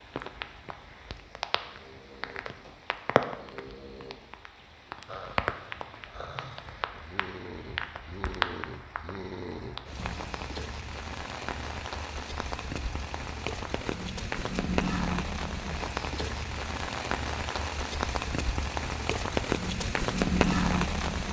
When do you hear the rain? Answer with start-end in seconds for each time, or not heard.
0.0-21.2.